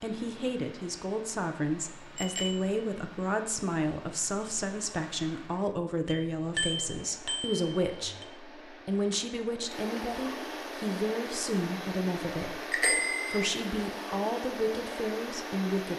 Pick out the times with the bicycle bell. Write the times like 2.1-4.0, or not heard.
2.1-2.8, 6.0-8.2, 12.7-13.5.